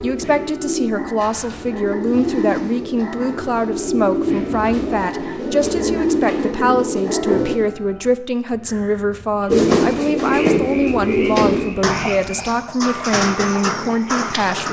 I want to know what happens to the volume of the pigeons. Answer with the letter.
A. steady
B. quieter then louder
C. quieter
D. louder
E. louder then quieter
E.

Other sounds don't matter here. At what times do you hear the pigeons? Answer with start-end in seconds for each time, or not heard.
0.0-7.6, 9.4-14.6.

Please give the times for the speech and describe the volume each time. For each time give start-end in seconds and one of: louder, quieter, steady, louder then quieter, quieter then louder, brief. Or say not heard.
0.0-14.6 steady.